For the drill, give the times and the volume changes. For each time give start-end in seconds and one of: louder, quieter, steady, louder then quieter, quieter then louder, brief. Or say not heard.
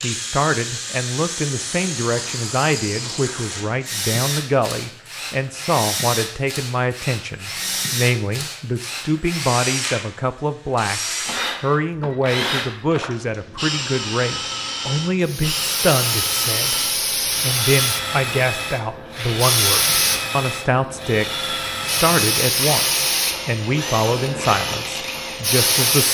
0.0-26.0 steady.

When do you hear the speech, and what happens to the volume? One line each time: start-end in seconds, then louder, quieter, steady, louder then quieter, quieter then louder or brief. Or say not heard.
0.0-26.0 steady.